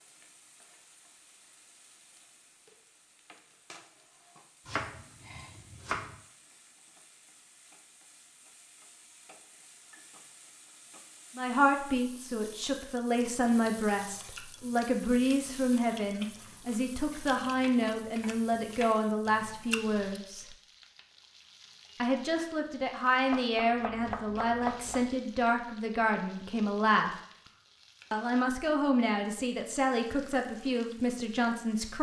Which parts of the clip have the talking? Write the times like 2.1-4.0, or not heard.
11.3-20.6, 22.0-27.1, 28.1-31.9.